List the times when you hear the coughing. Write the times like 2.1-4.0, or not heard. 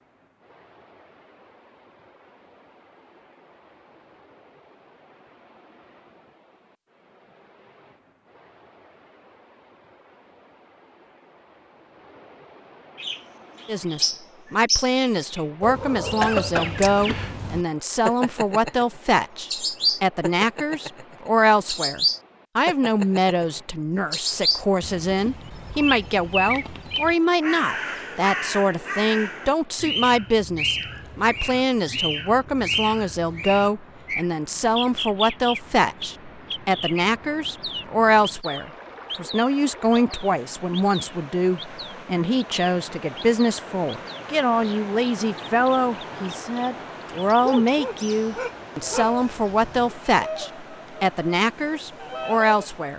16.2-17.2.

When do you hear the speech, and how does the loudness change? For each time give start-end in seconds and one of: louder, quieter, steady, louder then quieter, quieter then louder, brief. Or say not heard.
13.7-52.9 steady.